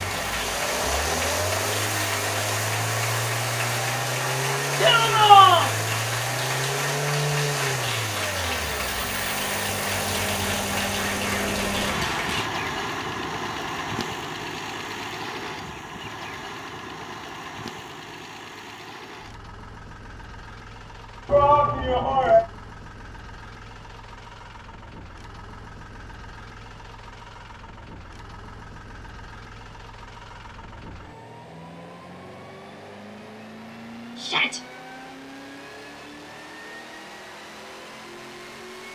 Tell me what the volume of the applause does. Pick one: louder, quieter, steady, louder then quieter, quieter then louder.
steady.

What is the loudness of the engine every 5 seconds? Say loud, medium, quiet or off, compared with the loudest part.
loud, loud, loud, medium, quiet, quiet, quiet, quiet.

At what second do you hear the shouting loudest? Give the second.
5 s.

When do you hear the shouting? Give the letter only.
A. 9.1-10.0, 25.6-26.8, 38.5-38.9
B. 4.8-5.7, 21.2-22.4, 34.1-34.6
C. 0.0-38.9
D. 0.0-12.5
B.